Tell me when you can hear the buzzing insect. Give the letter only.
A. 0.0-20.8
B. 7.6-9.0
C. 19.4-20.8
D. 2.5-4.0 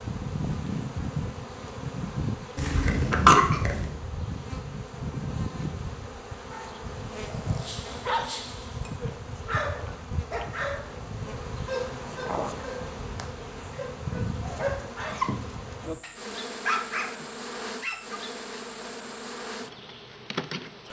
A.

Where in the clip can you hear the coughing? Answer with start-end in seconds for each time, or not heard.
2.5-4.0.